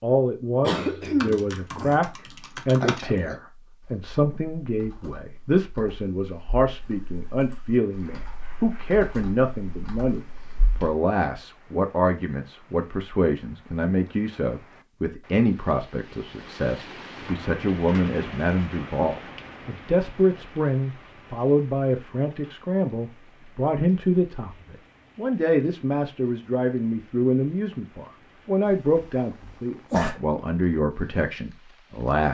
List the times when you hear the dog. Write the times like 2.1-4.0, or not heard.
not heard.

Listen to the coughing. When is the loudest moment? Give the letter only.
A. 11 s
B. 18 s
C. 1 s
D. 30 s
C.